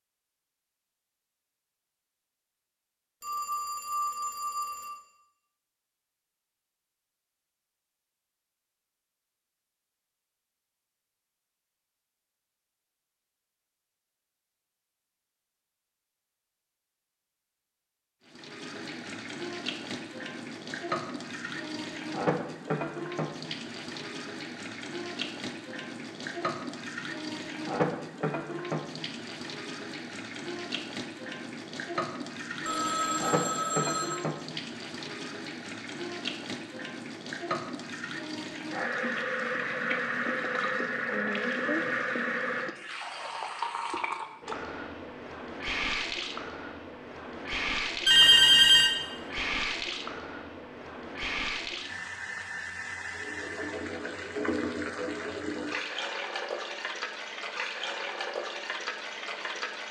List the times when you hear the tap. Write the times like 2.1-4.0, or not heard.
18.2-59.8.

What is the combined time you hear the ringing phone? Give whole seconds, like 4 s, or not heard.
4 s.